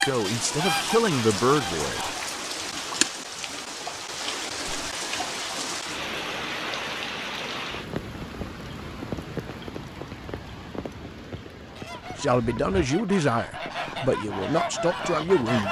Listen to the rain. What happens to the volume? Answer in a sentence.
The loudness of the rain goes down.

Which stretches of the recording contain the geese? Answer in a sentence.
You can hear the geese from 0.0 to 2.2 s and from 11.7 to 15.6 s.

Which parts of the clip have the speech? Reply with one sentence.
The speech can be heard from 0.1 to 2.1 s and from 12.2 to 15.6 s.